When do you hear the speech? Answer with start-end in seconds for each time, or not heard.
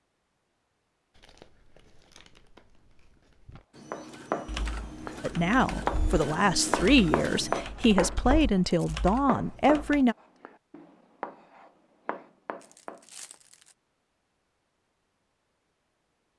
5.2-10.2.